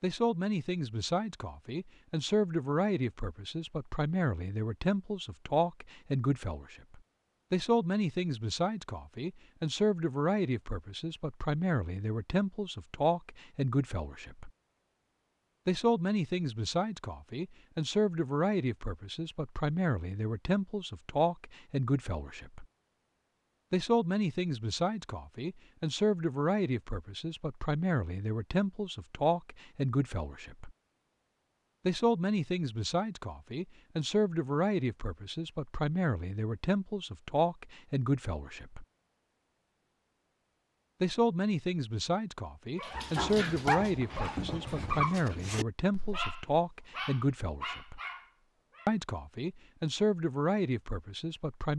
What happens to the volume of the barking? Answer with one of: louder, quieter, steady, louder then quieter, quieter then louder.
quieter.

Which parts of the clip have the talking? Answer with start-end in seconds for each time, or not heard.
0.0-14.5, 15.7-22.6, 23.7-30.7, 31.9-38.9, 41.0-48.0, 48.9-51.7.